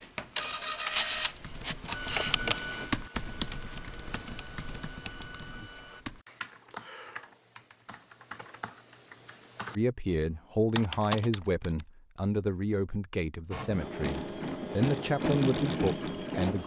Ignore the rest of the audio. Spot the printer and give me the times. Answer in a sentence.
The printer can be heard from 0.0 to 6.0 s and from 13.5 to 16.6 s.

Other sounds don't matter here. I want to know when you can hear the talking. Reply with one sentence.
The talking can be heard from 9.8 to 16.6 s.